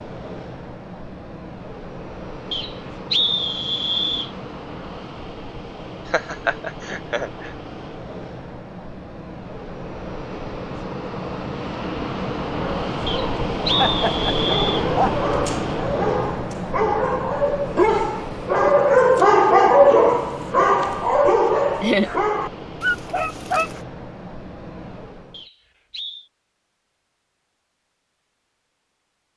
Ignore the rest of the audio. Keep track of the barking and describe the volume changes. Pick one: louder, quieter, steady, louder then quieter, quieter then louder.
louder then quieter.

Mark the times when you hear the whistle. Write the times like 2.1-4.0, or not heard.
2.5-4.3, 13.1-14.8, 25.3-26.2.